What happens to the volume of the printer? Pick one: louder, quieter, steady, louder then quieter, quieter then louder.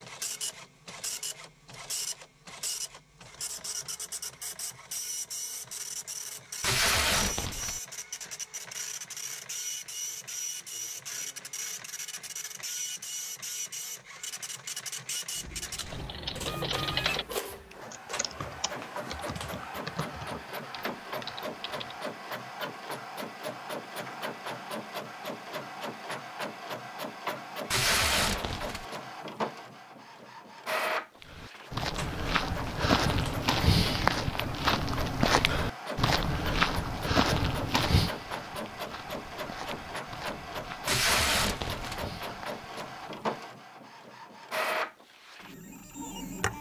steady.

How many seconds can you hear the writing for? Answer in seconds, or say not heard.
not heard.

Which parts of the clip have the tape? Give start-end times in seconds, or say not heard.
6.6-7.8, 27.7-28.9, 40.9-42.0.